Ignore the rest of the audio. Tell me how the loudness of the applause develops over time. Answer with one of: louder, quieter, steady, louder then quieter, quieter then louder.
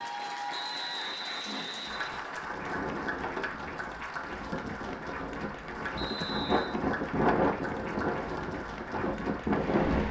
steady.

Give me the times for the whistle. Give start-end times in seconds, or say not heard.
0.5-2.2, 6.0-6.8.